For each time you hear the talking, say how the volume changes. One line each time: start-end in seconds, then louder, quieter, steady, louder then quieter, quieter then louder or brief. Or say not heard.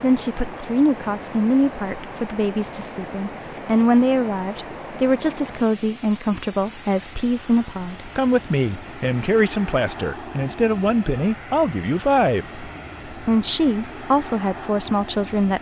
0.0-15.5 steady.